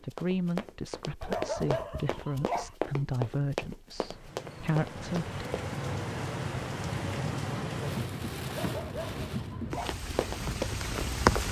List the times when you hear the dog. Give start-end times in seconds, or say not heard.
1.2-2.8, 8.4-10.0.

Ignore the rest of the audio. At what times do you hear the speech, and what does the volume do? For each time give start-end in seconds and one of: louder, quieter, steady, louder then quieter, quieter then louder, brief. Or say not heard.
0.0-5.3 steady.